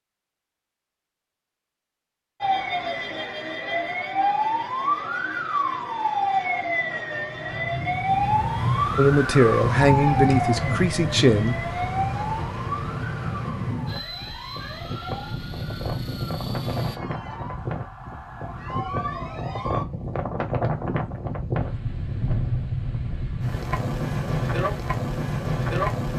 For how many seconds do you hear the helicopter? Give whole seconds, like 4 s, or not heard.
3 s.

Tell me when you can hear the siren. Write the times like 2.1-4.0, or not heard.
2.4-19.9.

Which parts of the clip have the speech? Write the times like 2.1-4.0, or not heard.
8.9-11.6.